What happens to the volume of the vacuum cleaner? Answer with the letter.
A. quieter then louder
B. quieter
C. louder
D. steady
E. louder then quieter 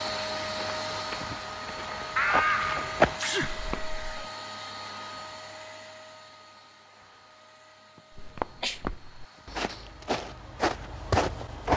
B.